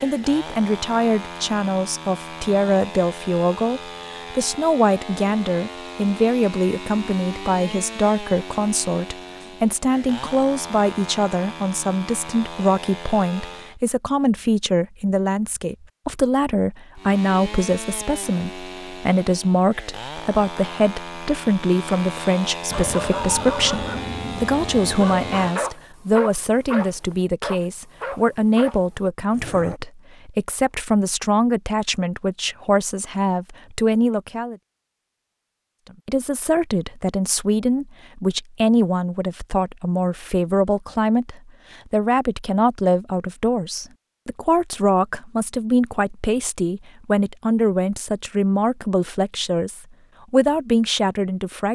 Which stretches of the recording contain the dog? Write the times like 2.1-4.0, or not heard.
22.7-29.8.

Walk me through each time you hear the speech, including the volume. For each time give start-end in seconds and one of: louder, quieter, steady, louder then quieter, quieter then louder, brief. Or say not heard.
0.0-34.5 steady
36.0-51.7 steady.